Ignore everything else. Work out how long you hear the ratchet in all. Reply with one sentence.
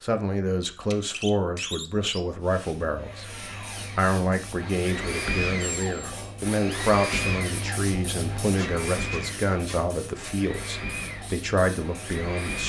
You can't hear the ratchet here.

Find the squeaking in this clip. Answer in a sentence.
You can hear the squeaking from 0.8 to 2.2 s, from 5.6 to 6.3 s and from 8.6 to 10.3 s.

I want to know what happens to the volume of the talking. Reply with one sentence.
The volume of the talking stays about the same.